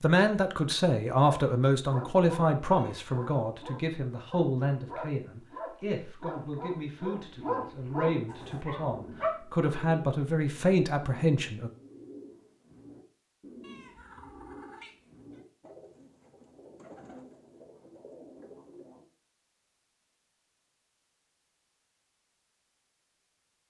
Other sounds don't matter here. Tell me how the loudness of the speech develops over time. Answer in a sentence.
The loudness of the speech goes down, then up.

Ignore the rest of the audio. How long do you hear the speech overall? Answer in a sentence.
The speech can be heard for 12 seconds in total.